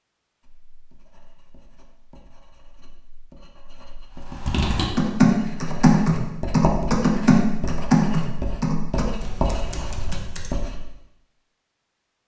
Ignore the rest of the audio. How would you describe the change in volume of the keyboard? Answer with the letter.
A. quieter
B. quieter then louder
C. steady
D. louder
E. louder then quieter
A.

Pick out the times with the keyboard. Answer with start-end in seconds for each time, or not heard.
4.3-10.6.